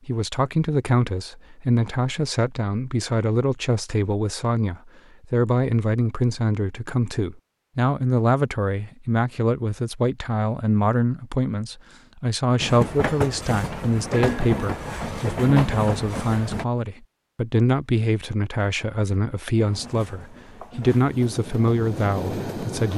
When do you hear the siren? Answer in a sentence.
The siren can't be heard in this clip.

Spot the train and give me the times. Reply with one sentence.
The train can be heard from 12.6 to 16.6 s and from 19.6 to 22.9 s.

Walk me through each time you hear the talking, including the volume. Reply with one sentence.
You can hear the talking from 0.1 to 22.9 s, at a steady volume.